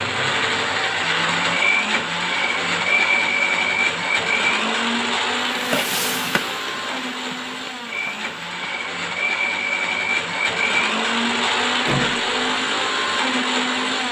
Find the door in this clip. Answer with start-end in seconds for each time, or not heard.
11.8-12.6.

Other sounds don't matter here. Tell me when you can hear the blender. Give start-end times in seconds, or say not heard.
0.0-14.0.